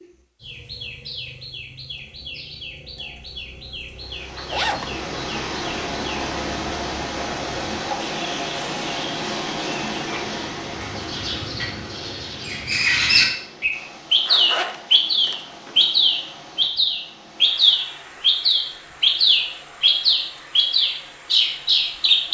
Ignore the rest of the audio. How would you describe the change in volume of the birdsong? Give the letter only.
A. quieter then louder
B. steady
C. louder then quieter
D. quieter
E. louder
E.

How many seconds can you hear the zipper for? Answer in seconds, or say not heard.
2 s.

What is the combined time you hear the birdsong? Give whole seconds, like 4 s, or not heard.
22 s.